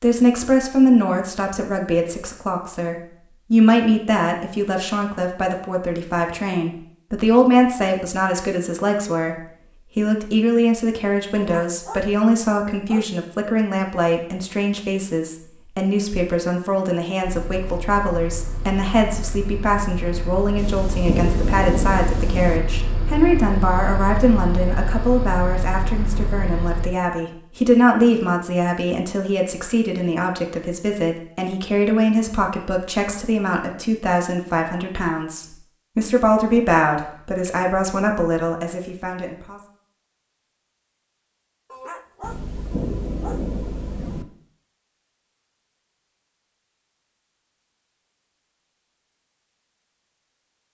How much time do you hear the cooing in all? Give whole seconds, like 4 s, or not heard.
not heard.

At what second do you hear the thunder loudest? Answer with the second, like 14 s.
21 s.